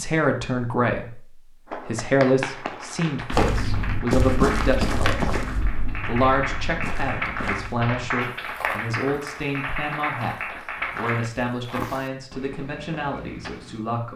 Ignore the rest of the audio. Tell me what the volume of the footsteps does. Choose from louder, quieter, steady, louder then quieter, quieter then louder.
quieter.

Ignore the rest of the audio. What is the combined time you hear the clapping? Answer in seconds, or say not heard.
10 s.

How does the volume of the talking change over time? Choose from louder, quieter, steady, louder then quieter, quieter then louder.
quieter.